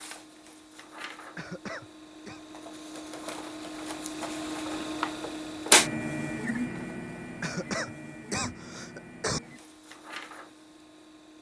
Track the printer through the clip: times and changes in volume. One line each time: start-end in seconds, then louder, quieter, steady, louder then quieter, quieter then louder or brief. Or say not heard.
0.0-11.3 louder then quieter.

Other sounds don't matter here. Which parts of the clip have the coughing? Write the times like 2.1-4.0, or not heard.
1.4-2.4, 7.4-9.4.